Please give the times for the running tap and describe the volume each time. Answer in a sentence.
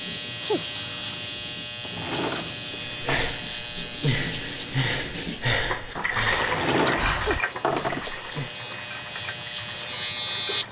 You can hear the running tap from 0.0 to 10.6 s, getting louder then quieter.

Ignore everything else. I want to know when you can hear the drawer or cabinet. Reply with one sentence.
The drawer or cabinet can be heard from 1.8 to 3.2 s and from 6.4 to 8.2 s.